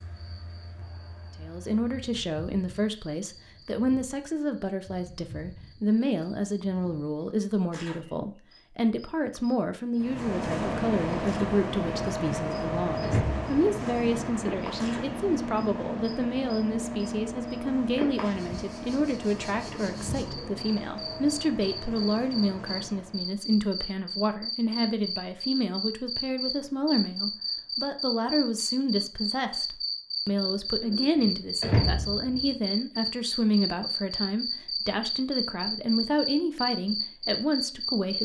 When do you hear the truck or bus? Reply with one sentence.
The truck or bus can be heard from 9.9 to 23.4 s.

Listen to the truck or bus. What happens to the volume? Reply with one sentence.
The loudness of the truck or bus goes down.